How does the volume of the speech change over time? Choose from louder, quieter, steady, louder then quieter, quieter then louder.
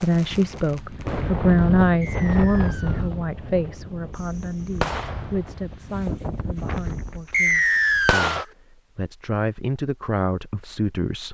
quieter then louder.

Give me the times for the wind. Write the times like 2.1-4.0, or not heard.
0.1-7.2.